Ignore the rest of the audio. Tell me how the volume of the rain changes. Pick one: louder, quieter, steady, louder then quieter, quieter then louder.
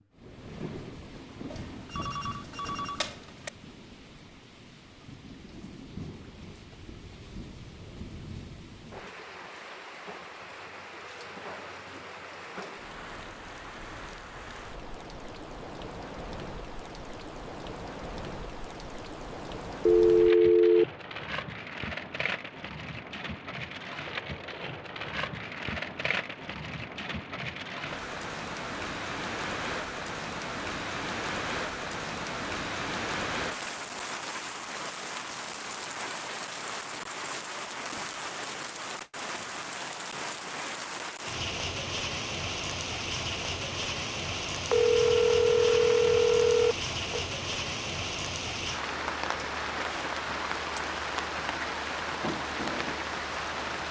louder.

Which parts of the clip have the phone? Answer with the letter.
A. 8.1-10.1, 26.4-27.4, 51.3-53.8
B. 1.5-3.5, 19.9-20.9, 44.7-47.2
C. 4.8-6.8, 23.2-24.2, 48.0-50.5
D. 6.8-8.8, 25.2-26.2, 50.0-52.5
B.